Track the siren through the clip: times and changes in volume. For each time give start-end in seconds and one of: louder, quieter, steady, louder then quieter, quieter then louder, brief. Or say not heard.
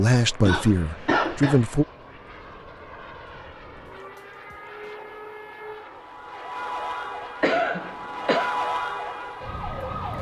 0.1-10.1 louder.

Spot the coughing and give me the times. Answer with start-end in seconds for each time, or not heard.
0.5-1.6, 7.4-8.6.